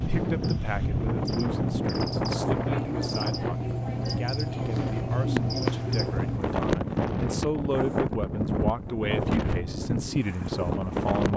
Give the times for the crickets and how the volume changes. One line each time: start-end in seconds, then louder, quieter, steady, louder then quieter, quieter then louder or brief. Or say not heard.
0.0-6.4 louder.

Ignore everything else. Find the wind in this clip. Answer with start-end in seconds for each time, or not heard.
0.0-11.3.